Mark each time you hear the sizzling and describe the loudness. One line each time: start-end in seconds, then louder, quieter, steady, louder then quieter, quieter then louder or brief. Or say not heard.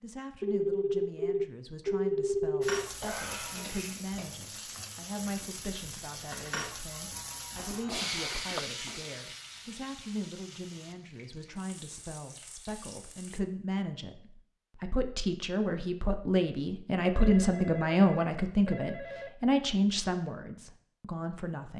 2.6-13.4 louder then quieter.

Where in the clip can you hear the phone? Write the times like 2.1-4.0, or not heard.
0.4-2.9, 7.5-8.7, 17.1-19.3.